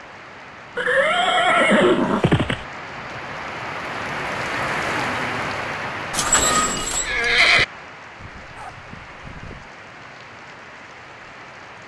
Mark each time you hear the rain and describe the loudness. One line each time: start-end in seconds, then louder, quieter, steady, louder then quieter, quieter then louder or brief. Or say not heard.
0.0-11.8 louder then quieter.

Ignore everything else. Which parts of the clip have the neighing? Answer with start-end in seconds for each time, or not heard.
0.8-2.6, 6.1-7.7.